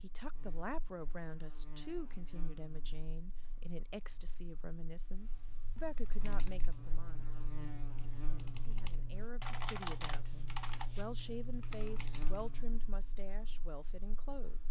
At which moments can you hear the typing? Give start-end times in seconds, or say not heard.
5.8-12.7.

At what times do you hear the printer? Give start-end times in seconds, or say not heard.
not heard.